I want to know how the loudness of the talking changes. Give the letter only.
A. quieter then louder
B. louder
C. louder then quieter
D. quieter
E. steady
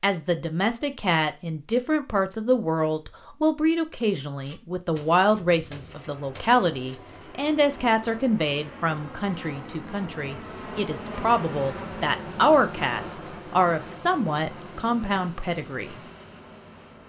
E.